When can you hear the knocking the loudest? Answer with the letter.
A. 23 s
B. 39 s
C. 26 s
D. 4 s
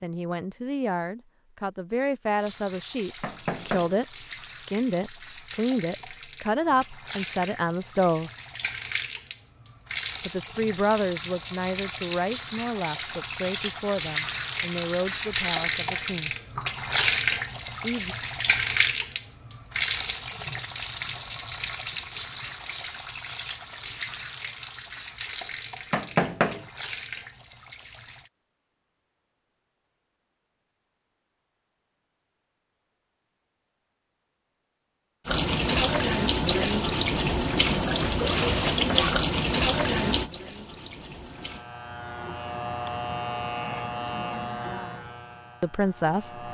C.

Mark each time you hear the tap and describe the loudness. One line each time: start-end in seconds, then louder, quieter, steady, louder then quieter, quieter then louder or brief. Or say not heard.
2.4-28.3 louder then quieter
35.2-41.6 quieter.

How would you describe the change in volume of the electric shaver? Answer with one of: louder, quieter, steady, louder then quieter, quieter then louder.
louder then quieter.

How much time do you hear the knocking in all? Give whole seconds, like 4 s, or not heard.
2 s.